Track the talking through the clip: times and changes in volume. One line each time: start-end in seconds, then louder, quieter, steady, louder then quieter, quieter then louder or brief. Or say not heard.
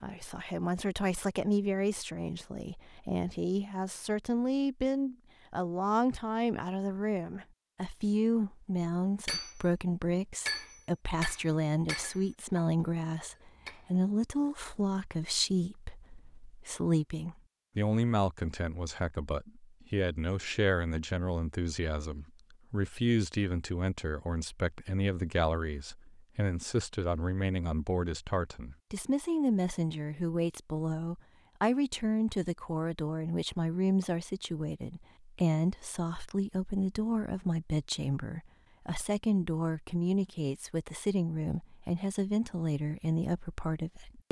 0.0-44.2 steady.